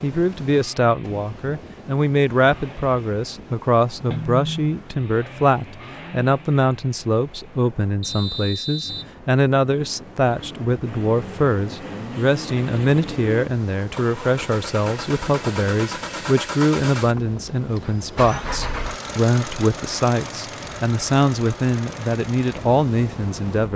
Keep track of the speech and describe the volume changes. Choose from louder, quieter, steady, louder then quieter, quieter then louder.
steady.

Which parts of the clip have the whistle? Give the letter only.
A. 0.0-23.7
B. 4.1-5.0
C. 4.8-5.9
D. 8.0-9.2
D.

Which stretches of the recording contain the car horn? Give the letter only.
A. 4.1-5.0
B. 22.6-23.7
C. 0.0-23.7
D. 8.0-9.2
A.